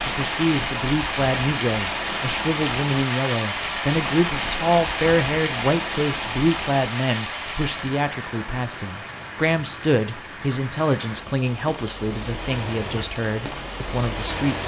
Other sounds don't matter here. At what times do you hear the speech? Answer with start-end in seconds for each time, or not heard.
0.1-14.6.